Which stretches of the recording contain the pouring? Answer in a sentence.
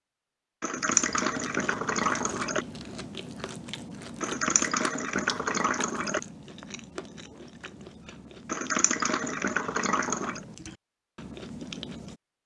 You can hear the pouring from 0.6 to 2.6 s, from 4.2 to 6.2 s and from 8.4 to 10.4 s.